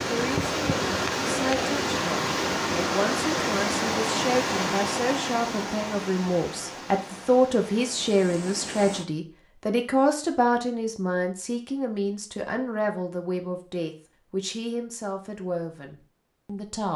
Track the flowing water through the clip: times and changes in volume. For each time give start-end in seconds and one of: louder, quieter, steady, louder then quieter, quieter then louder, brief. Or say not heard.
0.0-9.1 quieter.